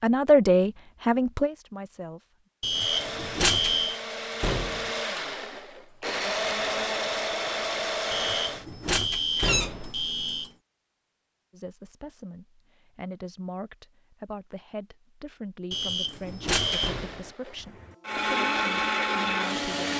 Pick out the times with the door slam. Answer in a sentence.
The door slam can be heard from 4.4 to 5.0 s, from 9.3 to 9.9 s and from 16.8 to 17.4 s.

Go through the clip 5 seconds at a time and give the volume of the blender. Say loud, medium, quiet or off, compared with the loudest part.
medium, loud, off, loud.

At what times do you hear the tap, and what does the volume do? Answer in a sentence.
You can't hear the tap here.